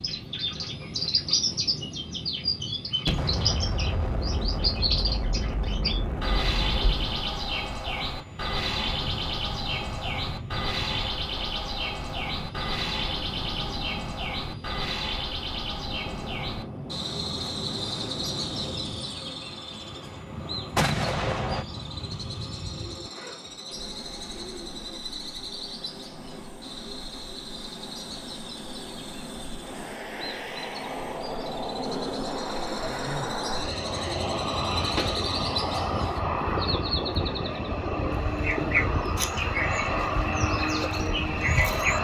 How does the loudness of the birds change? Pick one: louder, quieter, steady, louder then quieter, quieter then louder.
quieter then louder.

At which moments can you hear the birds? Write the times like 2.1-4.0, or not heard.
0.0-42.0.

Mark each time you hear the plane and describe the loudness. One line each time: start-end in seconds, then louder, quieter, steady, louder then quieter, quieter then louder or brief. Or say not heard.
0.0-42.0 louder.